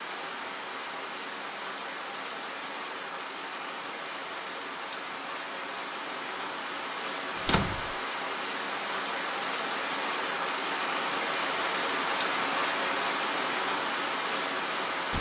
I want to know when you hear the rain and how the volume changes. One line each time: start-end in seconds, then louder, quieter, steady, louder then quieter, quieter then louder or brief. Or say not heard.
0.0-15.1 louder.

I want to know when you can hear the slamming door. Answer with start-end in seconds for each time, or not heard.
7.3-8.0.